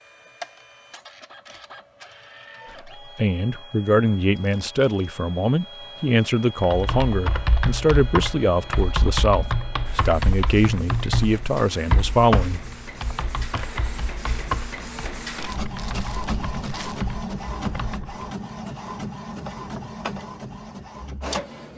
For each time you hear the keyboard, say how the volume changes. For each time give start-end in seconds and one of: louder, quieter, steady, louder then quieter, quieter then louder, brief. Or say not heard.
6.6-18.2 quieter.